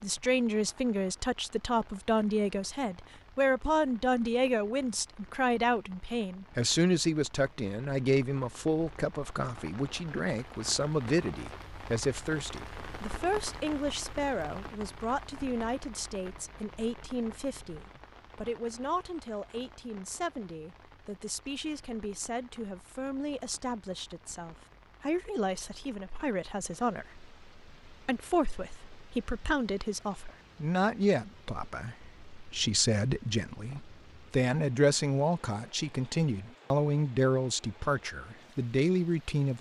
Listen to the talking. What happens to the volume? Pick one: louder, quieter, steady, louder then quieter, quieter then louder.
quieter then louder.